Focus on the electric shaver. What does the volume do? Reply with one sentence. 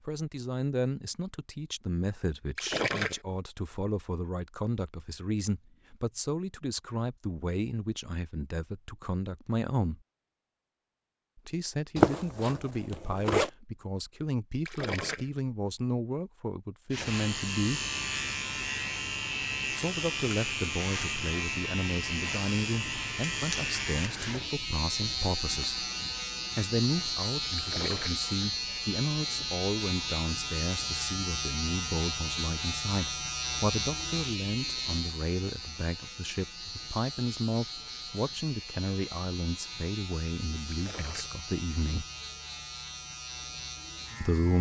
The loudness of the electric shaver goes down.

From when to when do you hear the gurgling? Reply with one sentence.
The gurgling can be heard from 2.5 to 3.2 s, from 14.7 to 15.3 s, from 27.6 to 28.2 s and from 40.7 to 41.4 s.